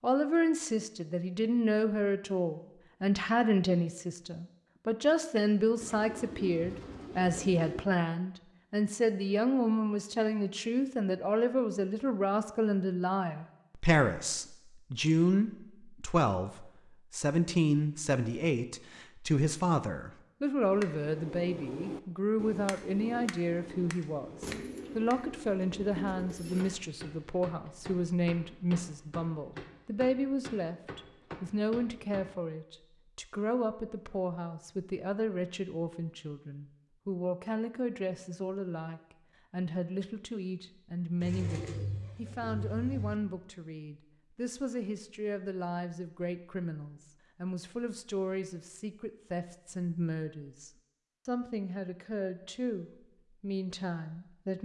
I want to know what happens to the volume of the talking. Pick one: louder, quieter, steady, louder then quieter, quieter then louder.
quieter.